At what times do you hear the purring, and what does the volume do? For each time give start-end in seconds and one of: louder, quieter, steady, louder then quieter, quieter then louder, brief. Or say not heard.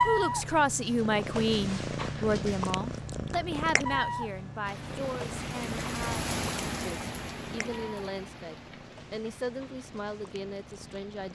0.0-11.3 quieter.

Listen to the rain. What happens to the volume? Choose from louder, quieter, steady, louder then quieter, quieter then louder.
quieter.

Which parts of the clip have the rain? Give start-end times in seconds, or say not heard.
4.6-11.3.